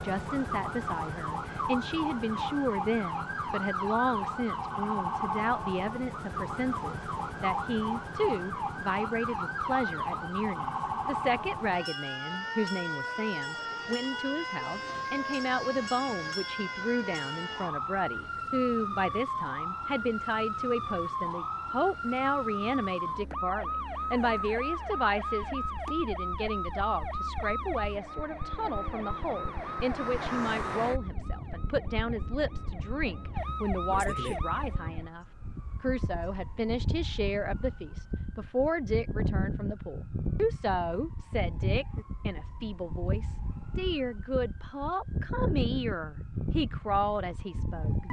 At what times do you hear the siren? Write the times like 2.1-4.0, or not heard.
0.0-48.0.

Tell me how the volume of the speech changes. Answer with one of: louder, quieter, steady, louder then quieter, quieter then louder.
steady.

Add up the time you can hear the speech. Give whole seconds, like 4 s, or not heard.
48 s.